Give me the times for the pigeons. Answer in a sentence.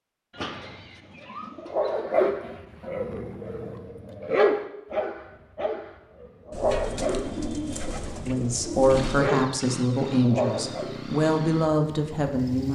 The pigeons can be heard from 0.3 to 2.0 s and from 6.5 to 9.2 s.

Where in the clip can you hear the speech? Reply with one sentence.
The speech can be heard from 8.2 to 12.7 s.